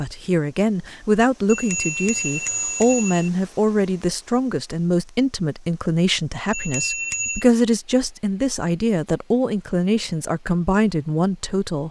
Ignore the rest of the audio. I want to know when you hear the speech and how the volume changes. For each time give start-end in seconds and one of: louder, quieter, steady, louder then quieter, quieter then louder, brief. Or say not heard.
0.0-11.8 steady.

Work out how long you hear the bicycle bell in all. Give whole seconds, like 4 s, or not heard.
3 s.